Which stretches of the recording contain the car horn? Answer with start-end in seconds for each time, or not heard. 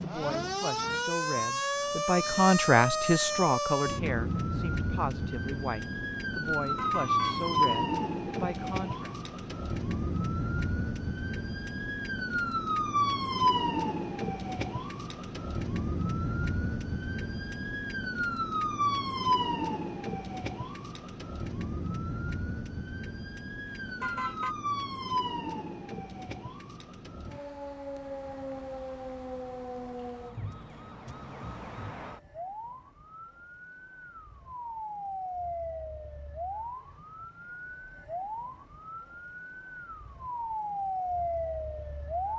6.6-7.5, 23.6-24.6.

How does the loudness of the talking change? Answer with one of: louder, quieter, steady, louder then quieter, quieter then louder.
louder then quieter.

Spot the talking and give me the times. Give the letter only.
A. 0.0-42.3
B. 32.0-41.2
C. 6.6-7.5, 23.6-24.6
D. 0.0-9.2
D.